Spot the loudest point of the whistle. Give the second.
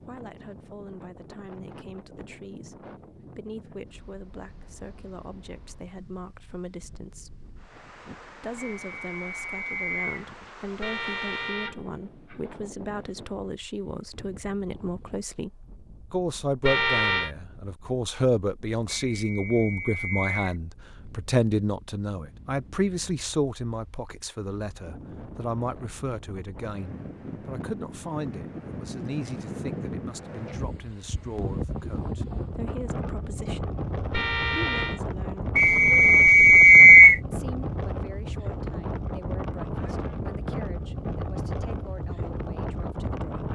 37 s.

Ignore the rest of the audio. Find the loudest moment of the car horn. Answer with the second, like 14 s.
17 s.